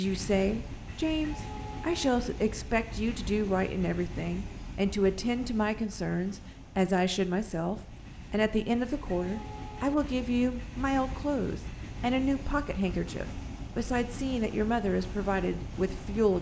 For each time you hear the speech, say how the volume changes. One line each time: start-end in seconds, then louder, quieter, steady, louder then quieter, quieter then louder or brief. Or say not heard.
0.0-16.3 steady.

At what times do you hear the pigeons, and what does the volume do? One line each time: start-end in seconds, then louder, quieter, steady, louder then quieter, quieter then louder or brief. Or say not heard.
not heard.